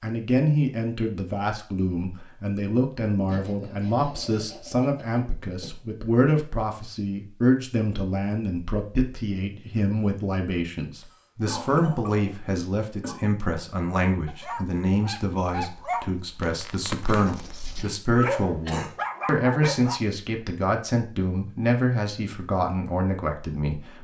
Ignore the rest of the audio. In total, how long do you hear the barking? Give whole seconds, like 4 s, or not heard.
6 s.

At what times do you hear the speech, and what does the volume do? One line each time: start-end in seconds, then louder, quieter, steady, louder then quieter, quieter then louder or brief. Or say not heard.
0.0-23.9 steady.